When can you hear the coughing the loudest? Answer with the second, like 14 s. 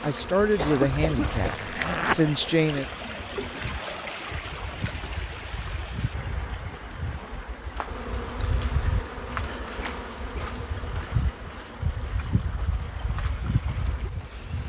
1 s.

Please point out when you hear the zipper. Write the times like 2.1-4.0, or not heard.
0.7-2.2.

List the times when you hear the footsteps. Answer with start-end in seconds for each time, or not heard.
not heard.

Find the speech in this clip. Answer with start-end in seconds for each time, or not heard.
0.0-2.9.